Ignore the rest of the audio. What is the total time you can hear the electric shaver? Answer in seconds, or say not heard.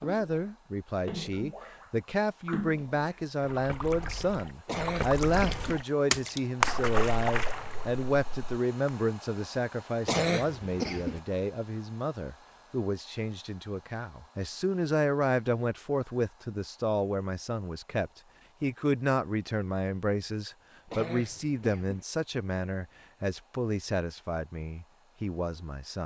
not heard.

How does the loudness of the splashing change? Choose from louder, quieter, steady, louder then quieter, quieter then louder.
louder.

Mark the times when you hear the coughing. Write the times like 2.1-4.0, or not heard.
4.7-5.8, 10.1-11.2, 20.9-22.1.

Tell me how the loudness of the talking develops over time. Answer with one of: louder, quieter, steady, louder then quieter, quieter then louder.
steady.